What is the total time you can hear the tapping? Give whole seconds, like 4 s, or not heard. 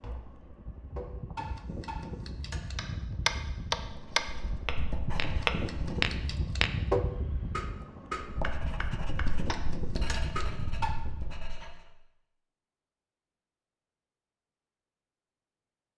11 s.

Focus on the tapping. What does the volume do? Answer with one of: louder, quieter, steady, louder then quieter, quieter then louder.
louder then quieter.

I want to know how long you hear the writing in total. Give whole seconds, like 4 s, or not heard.
6 s.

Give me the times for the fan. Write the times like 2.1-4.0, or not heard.
0.0-11.6.